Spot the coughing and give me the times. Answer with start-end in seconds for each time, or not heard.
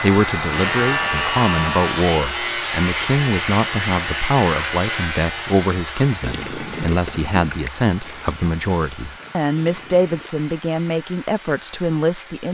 not heard.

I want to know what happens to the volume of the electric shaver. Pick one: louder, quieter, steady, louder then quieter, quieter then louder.
quieter.